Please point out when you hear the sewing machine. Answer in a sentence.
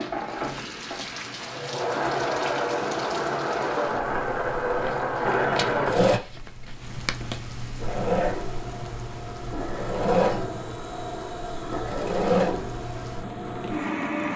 You can hear the sewing machine from 0.0 to 6.2 s and from 7.8 to 14.3 s.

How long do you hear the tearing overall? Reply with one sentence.
The tearing can be heard for 3 seconds in total.